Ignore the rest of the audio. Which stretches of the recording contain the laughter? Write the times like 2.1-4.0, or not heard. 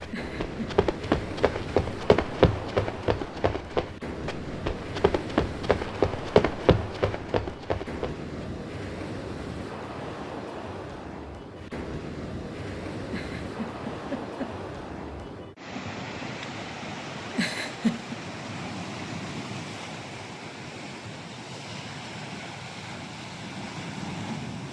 0.1-0.8, 13.1-14.6, 17.3-18.1.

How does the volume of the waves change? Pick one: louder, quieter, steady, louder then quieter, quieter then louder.
steady.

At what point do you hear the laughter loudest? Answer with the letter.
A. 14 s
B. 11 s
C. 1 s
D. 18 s
D.